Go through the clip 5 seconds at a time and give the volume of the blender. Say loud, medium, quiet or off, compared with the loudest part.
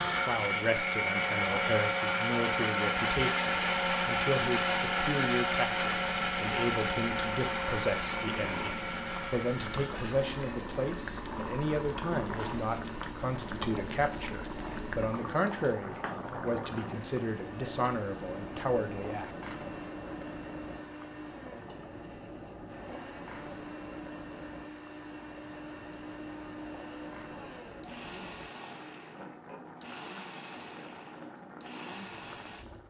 loud, loud, quiet, quiet, quiet, quiet, quiet.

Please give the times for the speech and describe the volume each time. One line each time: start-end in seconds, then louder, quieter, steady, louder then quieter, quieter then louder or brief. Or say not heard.
0.1-19.3 steady.